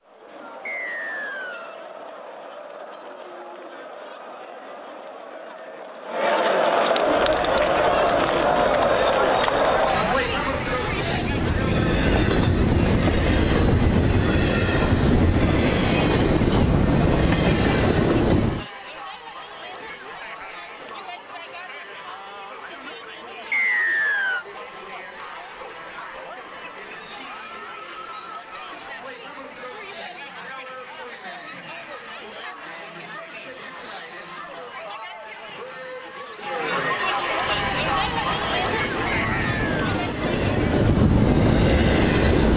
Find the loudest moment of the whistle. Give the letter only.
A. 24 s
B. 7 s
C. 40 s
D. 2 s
A.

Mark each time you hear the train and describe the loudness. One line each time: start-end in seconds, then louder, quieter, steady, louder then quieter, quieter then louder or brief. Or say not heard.
7.0-18.6 louder
37.4-42.5 louder.